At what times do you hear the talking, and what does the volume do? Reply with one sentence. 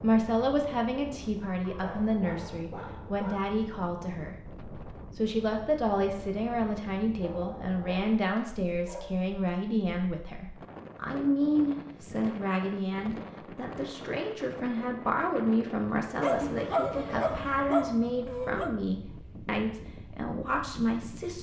You can hear the talking from 0.0 to 21.3 s, at a steady volume.